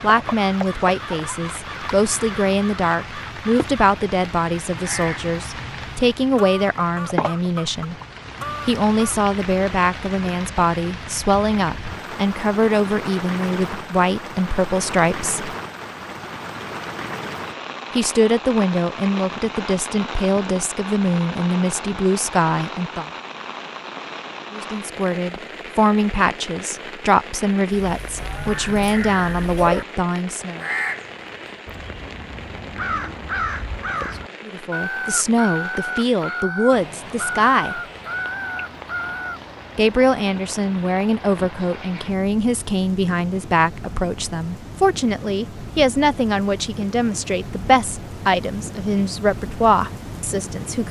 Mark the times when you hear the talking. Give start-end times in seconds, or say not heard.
0.0-8.0, 8.7-15.5, 17.9-23.1, 24.5-30.6, 34.5-37.8, 39.8-50.8.